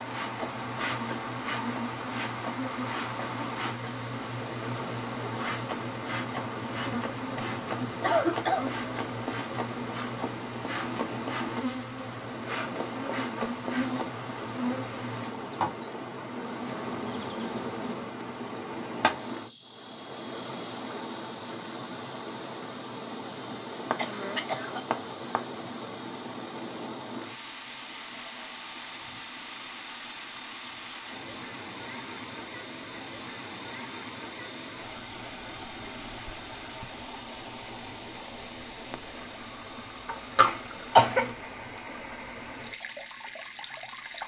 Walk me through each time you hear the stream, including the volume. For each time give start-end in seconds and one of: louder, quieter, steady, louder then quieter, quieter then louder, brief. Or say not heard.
0.0-44.2 steady.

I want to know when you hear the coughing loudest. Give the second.
41 s.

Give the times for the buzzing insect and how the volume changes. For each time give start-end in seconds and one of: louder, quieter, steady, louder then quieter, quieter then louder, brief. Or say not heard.
0.0-41.4 steady.